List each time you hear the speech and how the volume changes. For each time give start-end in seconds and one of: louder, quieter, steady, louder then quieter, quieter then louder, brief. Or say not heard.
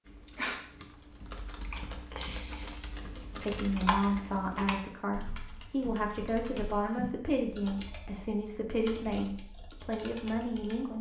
3.4-10.9 steady.